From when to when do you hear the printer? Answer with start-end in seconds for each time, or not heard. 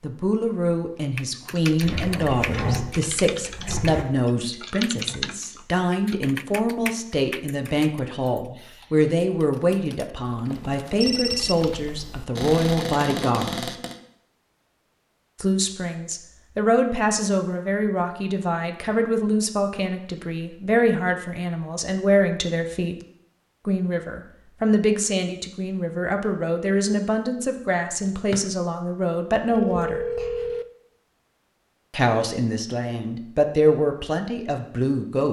not heard.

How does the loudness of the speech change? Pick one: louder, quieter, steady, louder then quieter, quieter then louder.
steady.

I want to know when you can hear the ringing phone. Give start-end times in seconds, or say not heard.
10.4-11.8, 29.5-30.6.